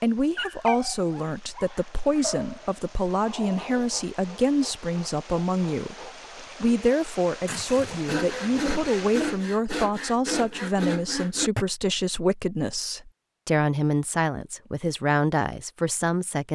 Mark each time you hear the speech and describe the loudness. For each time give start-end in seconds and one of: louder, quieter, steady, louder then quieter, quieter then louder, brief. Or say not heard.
0.0-16.4 steady.